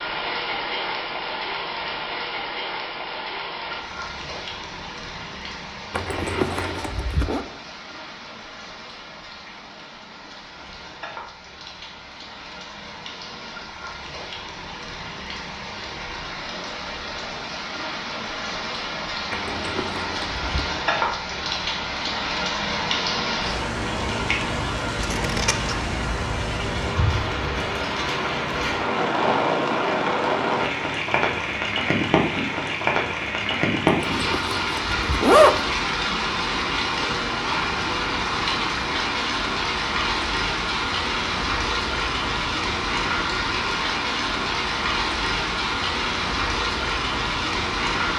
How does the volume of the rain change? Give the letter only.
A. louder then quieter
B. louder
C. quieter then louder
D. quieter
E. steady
B.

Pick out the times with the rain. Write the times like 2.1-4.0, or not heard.
0.0-48.1.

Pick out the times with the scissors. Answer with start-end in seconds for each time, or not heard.
25.0-25.9.